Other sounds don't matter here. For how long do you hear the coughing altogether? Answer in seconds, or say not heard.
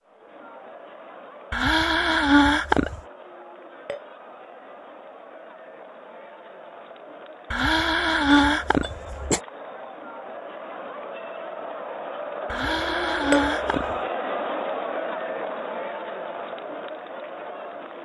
5 s.